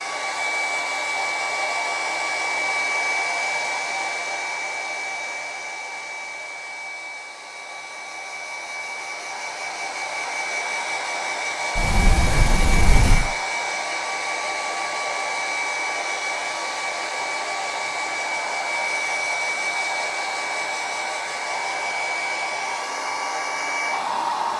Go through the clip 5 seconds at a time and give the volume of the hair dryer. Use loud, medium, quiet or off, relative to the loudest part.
loud, medium, loud, loud, loud.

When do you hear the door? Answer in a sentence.
You can hear the door from 11.8 to 13.3 s.